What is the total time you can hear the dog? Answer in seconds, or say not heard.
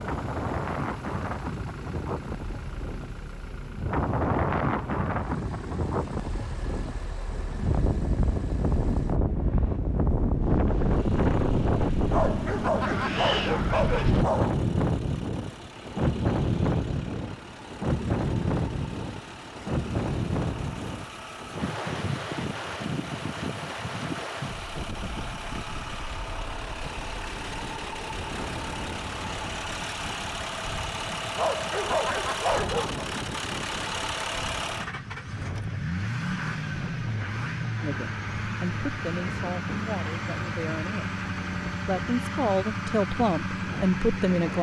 4 s.